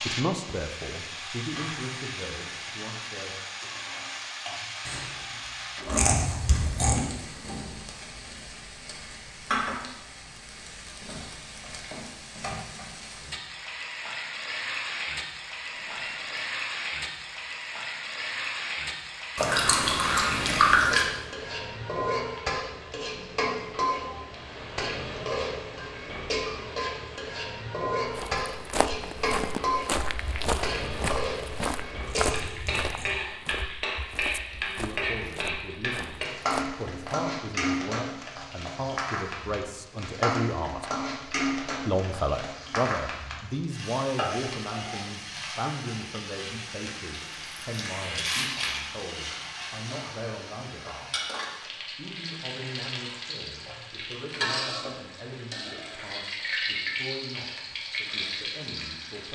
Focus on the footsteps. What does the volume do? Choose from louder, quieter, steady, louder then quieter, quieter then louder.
quieter.